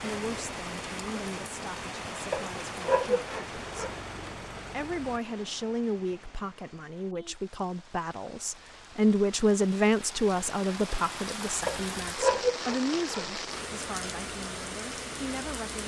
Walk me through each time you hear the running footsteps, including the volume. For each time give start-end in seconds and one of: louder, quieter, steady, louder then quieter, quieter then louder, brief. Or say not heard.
not heard.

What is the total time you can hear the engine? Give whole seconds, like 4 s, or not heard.
2 s.